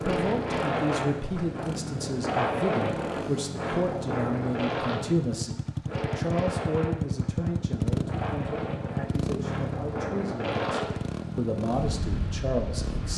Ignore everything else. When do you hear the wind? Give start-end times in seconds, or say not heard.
0.0-13.1.